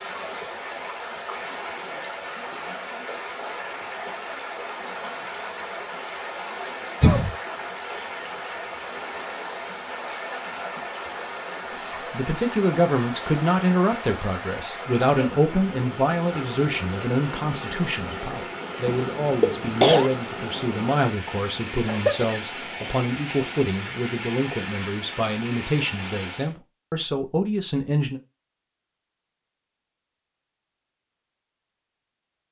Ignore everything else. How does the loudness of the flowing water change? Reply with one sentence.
The volume of the flowing water stays about the same.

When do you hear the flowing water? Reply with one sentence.
The flowing water can be heard from 0.0 to 26.6 s.